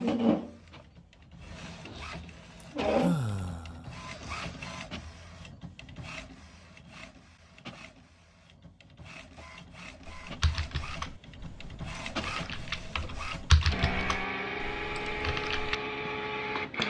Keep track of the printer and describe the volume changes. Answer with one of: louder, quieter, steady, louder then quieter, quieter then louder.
quieter then louder.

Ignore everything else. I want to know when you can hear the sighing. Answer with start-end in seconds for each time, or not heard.
2.6-4.0.